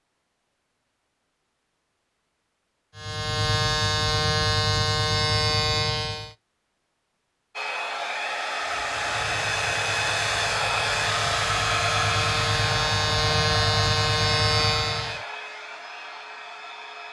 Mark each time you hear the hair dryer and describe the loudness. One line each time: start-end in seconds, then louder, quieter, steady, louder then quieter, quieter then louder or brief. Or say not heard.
7.5-17.0 quieter.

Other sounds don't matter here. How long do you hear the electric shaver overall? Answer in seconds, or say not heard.
10 s.